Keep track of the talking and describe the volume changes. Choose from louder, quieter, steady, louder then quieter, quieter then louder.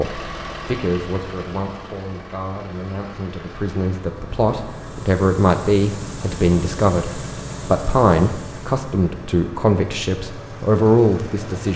louder.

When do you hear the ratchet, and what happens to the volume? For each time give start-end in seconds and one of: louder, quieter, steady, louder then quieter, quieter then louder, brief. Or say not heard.
not heard.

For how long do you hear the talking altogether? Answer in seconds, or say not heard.
12 s.